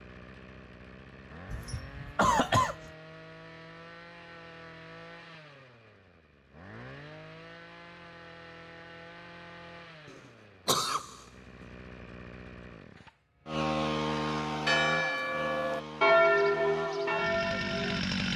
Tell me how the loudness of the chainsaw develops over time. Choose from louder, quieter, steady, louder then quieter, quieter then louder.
louder.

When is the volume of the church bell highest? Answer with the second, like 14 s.
16 s.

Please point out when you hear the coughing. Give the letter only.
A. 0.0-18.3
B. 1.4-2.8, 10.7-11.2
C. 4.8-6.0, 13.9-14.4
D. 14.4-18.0
B.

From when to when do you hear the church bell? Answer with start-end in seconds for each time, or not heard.
14.4-18.0.